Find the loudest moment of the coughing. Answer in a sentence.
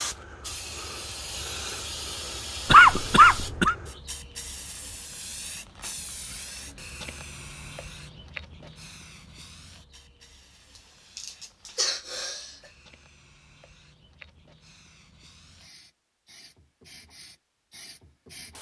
The loudest moment of the coughing is at 3 seconds.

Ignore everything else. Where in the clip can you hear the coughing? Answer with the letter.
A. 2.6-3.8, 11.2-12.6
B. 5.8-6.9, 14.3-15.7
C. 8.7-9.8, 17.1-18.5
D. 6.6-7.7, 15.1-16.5
A.